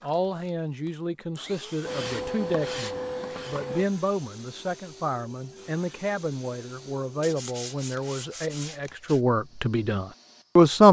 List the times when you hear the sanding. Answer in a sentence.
The sanding can be heard from 1.9 to 3.9 s and from 7.2 to 9.2 s.